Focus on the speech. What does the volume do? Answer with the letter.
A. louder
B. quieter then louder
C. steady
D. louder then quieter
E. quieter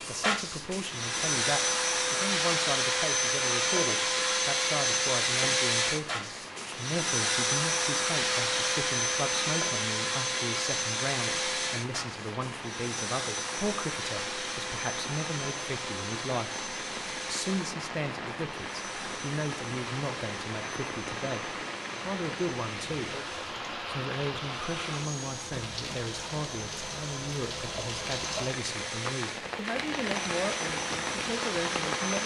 C.